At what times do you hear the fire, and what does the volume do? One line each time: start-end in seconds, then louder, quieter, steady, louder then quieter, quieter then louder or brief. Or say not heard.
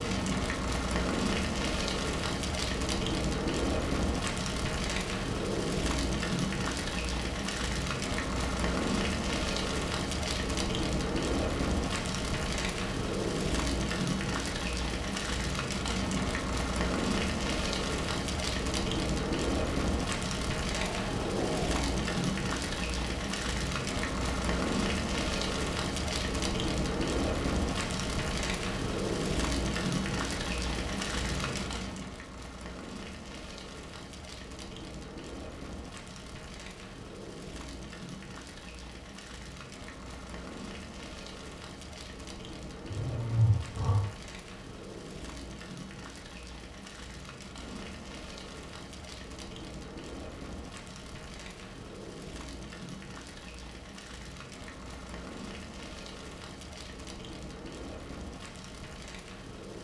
0.0-59.7 quieter.